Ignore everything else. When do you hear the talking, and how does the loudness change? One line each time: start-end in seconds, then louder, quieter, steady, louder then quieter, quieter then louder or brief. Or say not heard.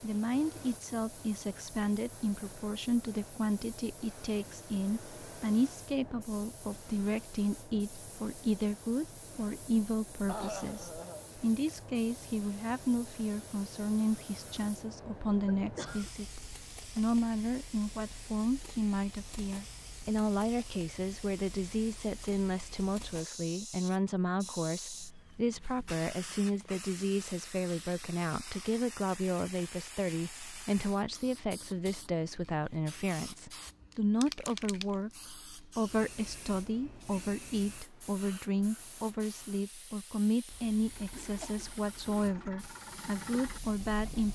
0.0-44.3 steady.